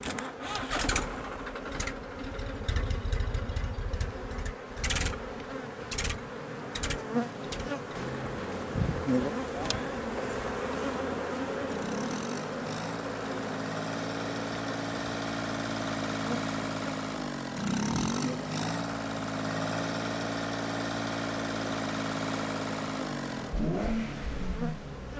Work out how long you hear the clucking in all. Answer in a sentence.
You can't hear the clucking here.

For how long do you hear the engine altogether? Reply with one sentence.
You can hear the engine for 25 seconds altogether.